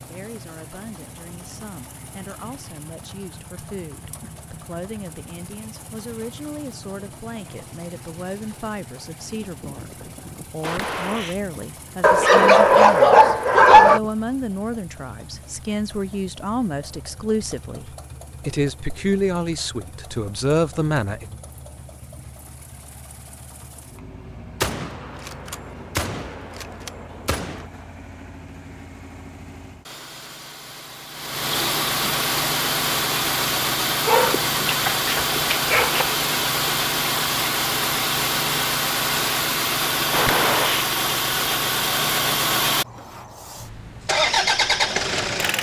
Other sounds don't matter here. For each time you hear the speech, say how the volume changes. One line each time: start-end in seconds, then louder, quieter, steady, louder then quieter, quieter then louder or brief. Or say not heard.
0.0-21.4 louder.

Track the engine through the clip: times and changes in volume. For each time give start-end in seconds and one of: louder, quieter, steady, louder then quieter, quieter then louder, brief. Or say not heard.
0.0-45.5 louder.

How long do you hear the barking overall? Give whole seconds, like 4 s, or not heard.
4 s.